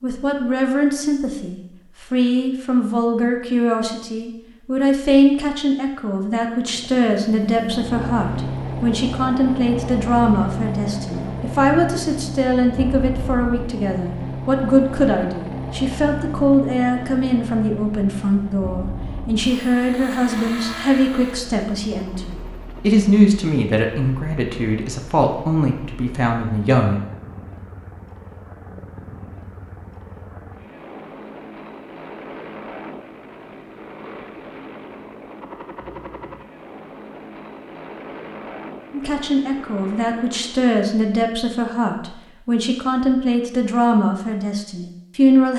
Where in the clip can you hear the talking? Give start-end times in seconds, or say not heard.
0.0-27.0, 38.9-45.5.